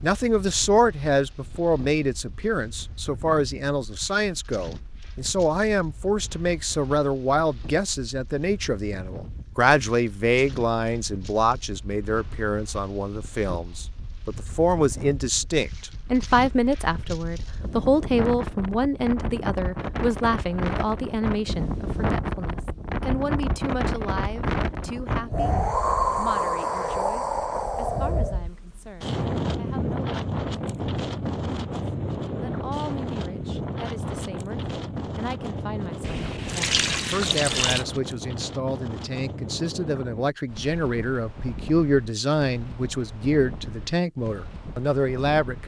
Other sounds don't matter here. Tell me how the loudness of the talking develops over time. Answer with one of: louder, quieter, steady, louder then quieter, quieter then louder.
quieter then louder.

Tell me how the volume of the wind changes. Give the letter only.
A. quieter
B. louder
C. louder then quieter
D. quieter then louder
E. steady
C.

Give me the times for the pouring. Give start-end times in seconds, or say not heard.
36.0-37.9.